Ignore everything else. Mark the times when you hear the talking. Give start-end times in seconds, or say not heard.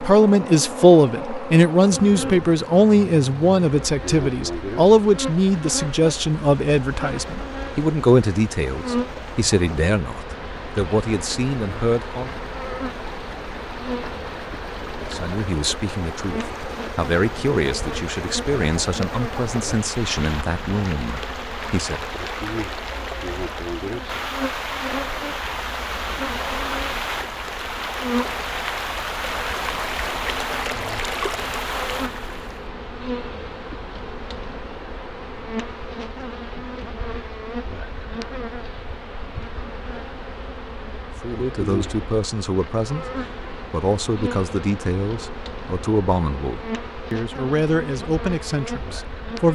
0.0-12.4, 14.9-22.1, 41.2-49.5.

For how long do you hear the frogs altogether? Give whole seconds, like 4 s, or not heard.
not heard.